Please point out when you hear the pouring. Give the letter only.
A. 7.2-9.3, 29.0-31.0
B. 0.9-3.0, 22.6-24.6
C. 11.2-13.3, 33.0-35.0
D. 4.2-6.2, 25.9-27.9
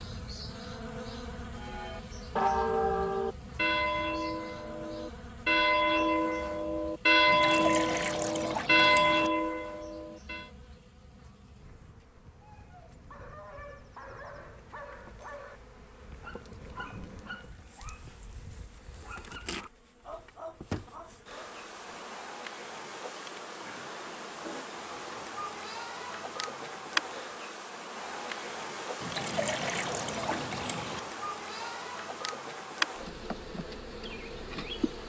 A.